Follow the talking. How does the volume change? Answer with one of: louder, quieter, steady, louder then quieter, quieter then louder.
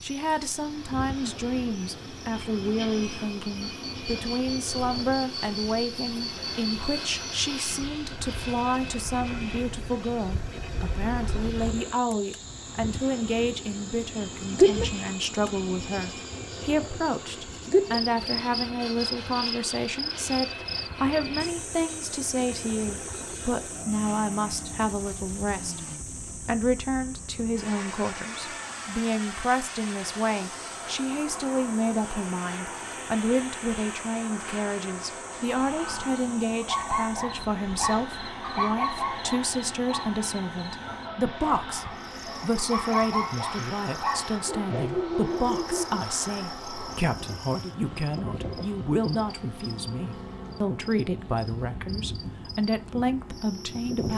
steady.